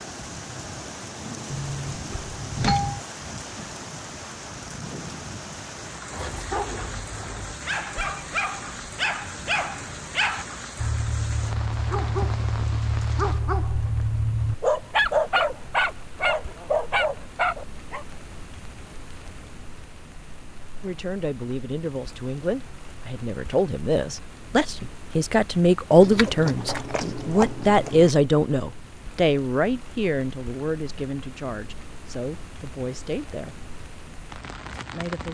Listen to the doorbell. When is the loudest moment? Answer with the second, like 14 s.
3 s.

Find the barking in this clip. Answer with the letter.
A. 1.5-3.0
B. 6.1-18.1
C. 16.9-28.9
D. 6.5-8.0
B.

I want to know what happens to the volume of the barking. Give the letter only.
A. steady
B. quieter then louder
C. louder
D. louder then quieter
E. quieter
C.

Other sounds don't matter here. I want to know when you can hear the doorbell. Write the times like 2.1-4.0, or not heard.
1.5-3.0.